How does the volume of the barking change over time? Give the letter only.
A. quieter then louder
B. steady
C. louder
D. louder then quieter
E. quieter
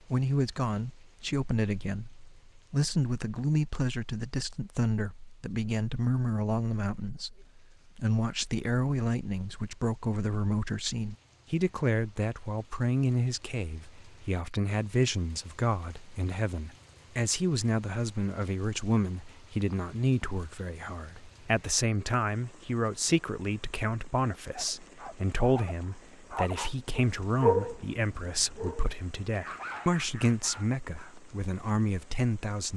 D.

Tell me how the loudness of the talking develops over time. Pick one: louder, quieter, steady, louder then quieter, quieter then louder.
steady.